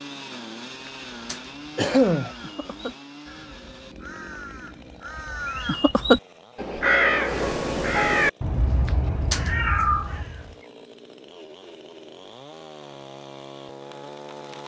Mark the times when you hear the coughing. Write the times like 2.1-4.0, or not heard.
1.3-2.3, 8.8-9.5.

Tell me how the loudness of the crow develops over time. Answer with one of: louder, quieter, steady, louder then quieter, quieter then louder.
louder then quieter.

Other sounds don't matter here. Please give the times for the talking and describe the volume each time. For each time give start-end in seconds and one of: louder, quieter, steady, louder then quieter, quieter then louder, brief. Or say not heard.
not heard.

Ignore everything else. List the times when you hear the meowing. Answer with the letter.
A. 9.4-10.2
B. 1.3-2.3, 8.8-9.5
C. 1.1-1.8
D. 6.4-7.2
A.